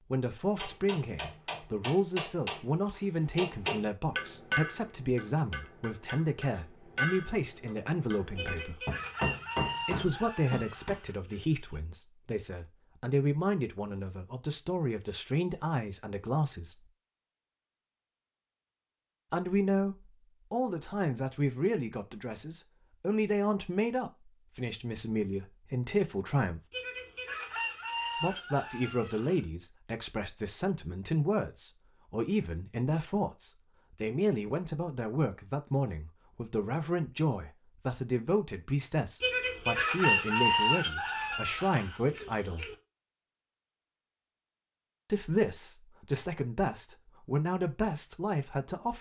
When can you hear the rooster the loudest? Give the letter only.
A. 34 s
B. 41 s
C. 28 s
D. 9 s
B.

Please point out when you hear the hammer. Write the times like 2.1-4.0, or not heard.
0.6-10.9.